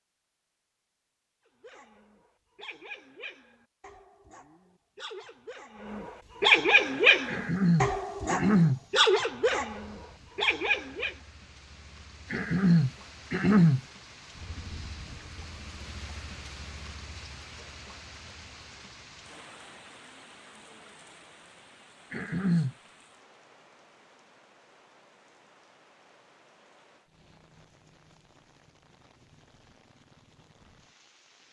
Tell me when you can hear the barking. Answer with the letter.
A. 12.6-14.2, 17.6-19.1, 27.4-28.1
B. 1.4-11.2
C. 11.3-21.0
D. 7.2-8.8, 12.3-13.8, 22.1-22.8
B.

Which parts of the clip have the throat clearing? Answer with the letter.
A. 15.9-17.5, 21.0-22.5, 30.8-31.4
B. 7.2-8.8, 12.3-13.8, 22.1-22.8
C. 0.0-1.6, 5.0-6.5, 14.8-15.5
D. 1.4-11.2
B.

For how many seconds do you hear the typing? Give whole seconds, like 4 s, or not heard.
not heard.